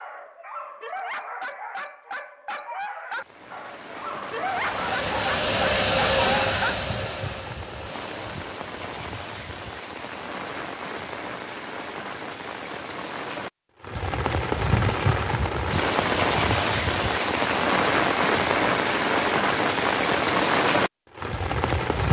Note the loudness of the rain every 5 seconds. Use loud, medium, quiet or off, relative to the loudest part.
quiet, quiet, medium, loud, loud.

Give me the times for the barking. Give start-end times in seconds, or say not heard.
0.0-6.8.